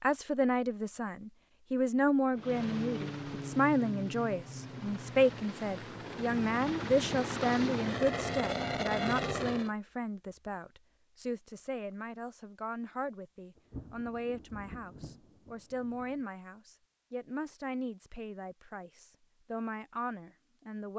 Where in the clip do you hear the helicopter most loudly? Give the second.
9 s.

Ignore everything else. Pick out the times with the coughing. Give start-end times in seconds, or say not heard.
not heard.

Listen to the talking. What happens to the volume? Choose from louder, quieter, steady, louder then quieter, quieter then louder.
quieter.